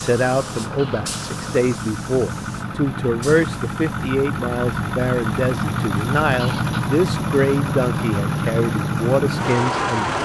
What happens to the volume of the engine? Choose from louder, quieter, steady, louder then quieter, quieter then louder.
louder.